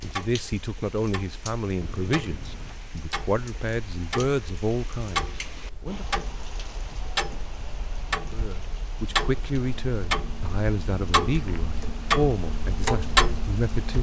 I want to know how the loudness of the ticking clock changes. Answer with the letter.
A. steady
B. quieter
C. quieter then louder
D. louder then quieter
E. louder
E.